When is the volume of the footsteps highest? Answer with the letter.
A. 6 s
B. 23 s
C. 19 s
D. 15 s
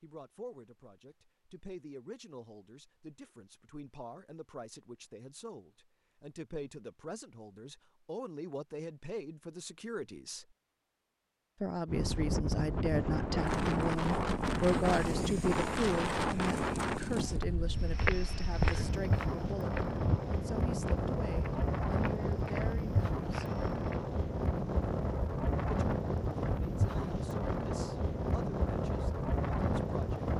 C.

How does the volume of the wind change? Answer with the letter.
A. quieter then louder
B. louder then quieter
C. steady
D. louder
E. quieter
C.